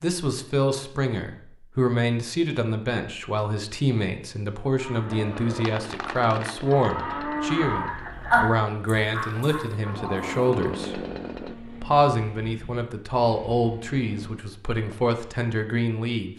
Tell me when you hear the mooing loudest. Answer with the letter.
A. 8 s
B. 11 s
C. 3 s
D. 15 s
A.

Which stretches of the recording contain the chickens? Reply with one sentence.
The chickens can't be heard in this clip.